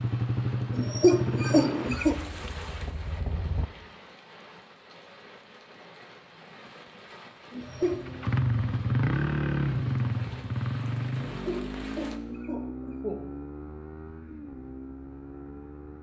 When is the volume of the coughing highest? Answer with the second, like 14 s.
1 s.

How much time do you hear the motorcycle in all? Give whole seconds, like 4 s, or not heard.
12 s.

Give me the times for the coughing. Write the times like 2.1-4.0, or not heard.
0.7-2.1, 7.5-8.0, 11.3-13.3.